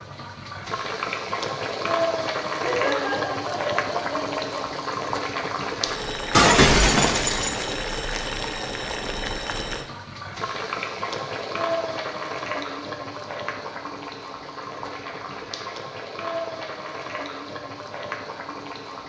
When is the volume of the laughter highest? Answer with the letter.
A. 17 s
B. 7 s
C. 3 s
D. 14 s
C.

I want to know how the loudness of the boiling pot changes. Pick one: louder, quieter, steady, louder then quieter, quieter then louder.
quieter.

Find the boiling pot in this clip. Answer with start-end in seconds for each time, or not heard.
0.0-19.0.